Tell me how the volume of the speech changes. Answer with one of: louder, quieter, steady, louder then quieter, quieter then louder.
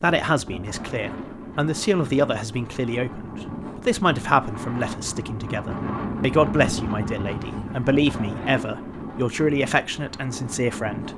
steady.